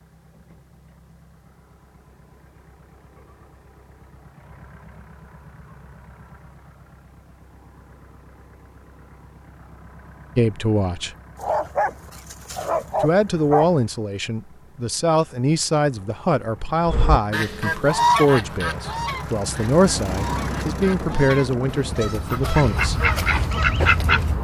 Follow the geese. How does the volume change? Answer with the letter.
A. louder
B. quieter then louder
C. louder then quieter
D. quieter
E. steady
B.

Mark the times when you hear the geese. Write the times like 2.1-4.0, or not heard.
16.9-24.3.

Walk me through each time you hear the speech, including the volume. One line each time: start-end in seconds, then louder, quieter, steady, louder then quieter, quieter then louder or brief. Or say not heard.
10.3-11.1 brief
13.0-23.1 steady.